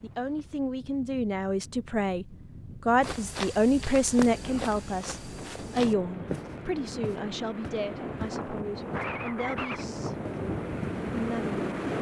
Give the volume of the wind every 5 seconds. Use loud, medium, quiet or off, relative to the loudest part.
quiet, medium, loud.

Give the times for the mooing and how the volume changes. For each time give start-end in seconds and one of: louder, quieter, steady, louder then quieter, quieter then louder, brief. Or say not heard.
not heard.